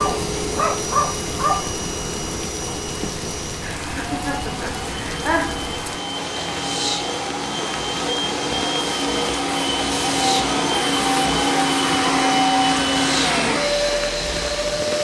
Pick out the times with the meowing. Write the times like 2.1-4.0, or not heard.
not heard.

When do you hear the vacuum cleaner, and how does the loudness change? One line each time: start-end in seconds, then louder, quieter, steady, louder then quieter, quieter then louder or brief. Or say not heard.
0.0-14.9 louder.